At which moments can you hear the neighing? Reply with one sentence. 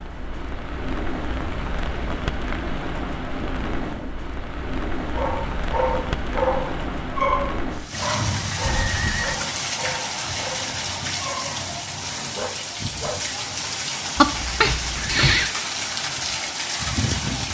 You can hear the neighing from 3.4 to 4.1 s, from 8.6 to 9.3 s and from 14.2 to 15.5 s.